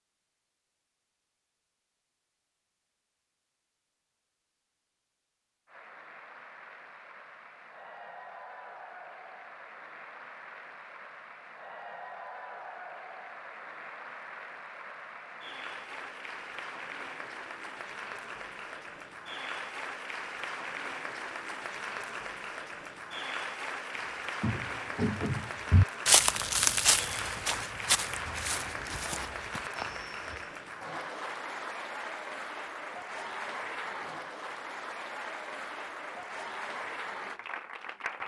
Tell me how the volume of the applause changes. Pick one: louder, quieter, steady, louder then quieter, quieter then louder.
louder.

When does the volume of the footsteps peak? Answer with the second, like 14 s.
26 s.